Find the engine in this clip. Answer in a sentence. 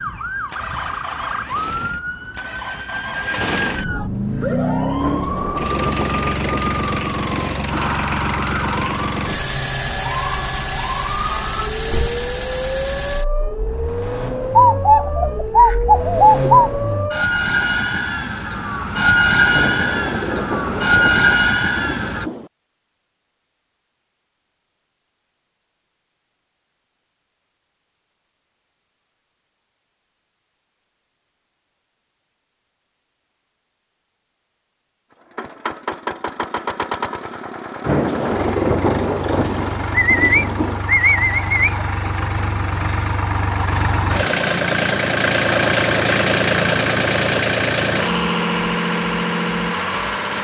The engine can be heard from 0.0 to 17.3 s and from 35.3 to 50.4 s.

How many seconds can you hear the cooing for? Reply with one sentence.
You can hear the cooing for 4 seconds altogether.